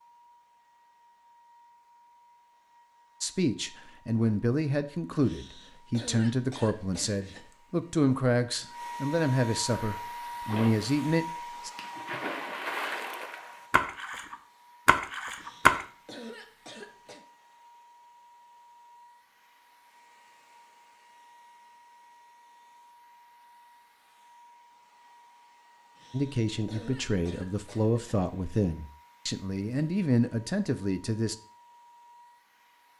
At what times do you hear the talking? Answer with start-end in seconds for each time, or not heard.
3.2-11.7, 26.1-31.4.